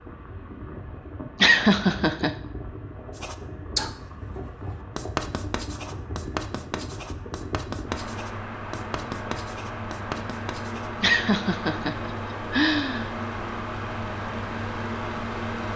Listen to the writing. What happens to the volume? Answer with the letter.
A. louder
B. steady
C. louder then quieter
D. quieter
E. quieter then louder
D.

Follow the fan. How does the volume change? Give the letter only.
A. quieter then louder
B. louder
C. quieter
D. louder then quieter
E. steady
B.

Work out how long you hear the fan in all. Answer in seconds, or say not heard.
16 s.